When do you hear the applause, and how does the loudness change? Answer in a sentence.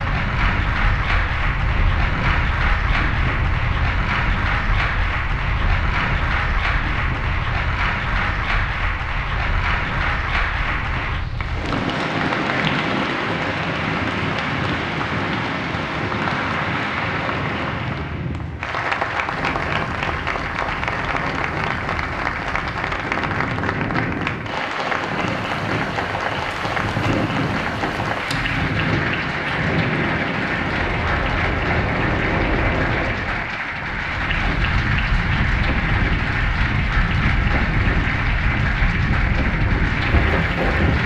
The applause can be heard from 0.0 to 41.0 s, at a steady volume.